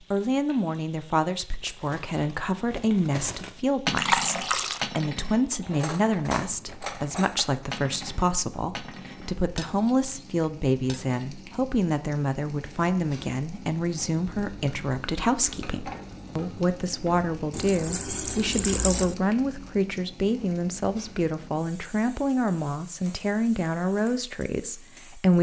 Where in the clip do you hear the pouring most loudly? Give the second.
4 s.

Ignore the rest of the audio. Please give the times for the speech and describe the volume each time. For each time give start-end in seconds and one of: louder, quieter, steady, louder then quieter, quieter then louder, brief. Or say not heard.
0.1-25.3 steady.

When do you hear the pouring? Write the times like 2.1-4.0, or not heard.
4.0-4.8, 17.5-19.1.